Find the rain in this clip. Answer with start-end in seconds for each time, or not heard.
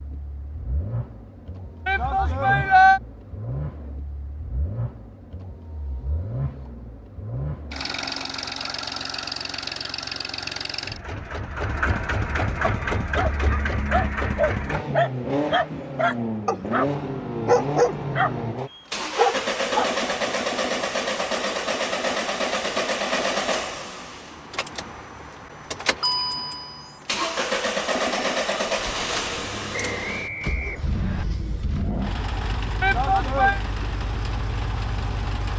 not heard.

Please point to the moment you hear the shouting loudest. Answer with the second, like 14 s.
3 s.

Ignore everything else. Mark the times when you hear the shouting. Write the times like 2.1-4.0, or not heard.
1.9-3.0, 32.8-33.6.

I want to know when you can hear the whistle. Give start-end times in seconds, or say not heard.
29.9-31.2.